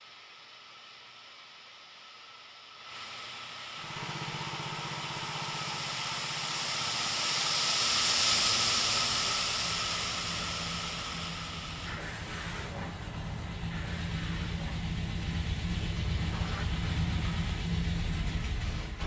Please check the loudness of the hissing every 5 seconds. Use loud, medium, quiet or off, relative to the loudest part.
quiet, loud, medium, quiet.